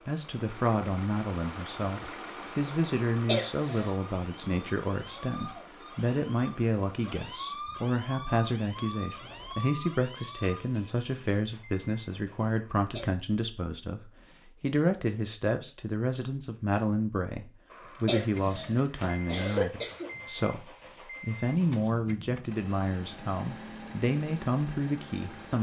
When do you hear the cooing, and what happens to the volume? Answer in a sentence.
The cooing can't be heard in this clip.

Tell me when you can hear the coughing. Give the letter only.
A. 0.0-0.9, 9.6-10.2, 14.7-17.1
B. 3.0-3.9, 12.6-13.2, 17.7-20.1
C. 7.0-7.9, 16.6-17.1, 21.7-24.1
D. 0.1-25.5
B.